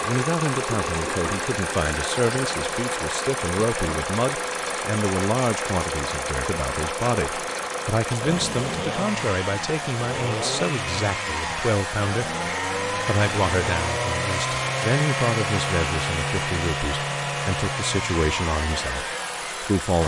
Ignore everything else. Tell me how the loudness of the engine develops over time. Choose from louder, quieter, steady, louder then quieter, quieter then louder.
steady.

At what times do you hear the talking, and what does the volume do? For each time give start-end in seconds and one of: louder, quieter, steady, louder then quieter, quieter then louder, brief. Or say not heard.
0.0-20.0 steady.